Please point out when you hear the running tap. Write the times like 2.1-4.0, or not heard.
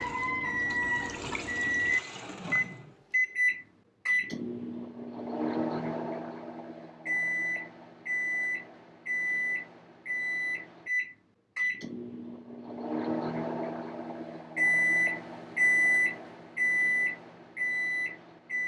0.0-3.0.